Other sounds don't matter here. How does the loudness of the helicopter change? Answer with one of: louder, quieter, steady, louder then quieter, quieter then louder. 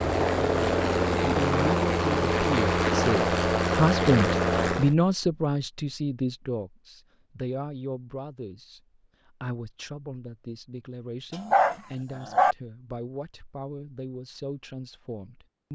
steady.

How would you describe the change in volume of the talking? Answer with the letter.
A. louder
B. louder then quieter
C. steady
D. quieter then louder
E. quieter
B.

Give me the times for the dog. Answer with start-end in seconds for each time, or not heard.
11.3-12.6.